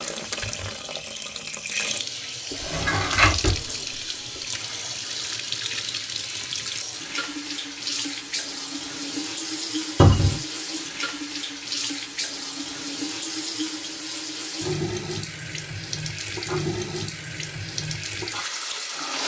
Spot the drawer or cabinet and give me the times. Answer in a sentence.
The drawer or cabinet can be heard from 2.5 to 3.6 s and from 9.9 to 10.4 s.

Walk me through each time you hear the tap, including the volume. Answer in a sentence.
You can hear the tap from 0.0 to 19.2 s, at a steady volume.